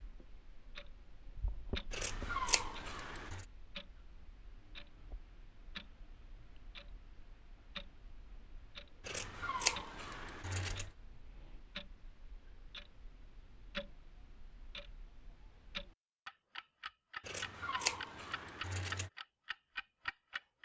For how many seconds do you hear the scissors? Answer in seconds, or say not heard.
5 s.